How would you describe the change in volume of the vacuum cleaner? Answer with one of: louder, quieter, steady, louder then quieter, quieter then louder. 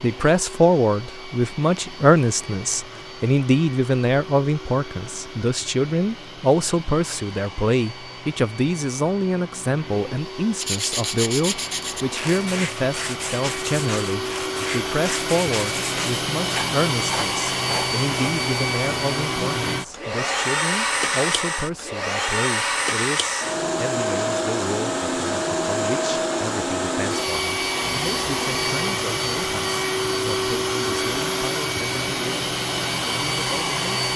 louder.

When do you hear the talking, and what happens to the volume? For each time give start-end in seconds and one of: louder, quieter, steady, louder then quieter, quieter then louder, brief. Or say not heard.
0.0-34.0 quieter.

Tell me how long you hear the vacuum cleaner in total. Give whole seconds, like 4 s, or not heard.
34 s.